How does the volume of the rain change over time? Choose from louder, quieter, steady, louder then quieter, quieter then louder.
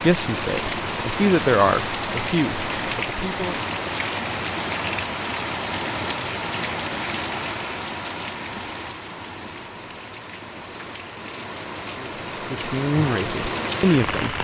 quieter then louder.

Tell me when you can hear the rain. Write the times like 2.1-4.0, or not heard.
0.0-14.4.